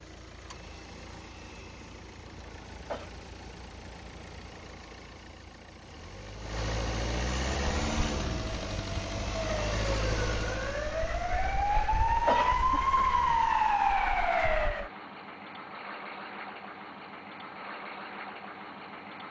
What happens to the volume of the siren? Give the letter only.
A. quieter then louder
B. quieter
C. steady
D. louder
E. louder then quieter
D.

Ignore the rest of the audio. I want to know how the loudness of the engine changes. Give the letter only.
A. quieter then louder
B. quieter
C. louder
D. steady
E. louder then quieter
E.